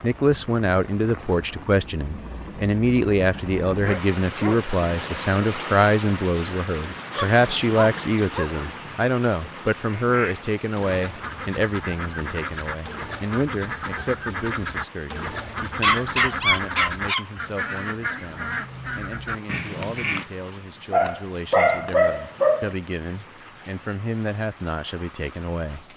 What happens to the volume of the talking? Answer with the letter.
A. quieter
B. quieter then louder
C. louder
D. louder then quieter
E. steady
A.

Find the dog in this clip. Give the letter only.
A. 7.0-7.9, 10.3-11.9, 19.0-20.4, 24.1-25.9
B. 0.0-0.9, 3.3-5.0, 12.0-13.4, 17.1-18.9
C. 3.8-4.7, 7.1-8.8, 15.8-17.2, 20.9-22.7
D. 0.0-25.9
C.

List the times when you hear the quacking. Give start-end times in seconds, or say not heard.
9.8-20.2.